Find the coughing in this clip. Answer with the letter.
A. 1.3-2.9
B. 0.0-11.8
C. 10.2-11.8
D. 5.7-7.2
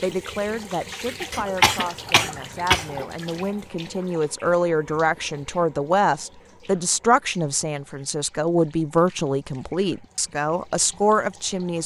A.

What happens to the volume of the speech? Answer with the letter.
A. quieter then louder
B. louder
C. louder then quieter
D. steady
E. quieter
B.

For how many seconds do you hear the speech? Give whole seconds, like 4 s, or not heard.
12 s.